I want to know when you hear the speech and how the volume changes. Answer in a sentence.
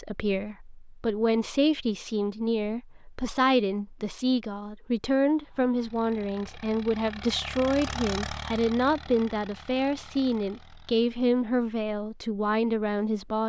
The speech can be heard from 0.0 to 13.4 s, at a steady volume.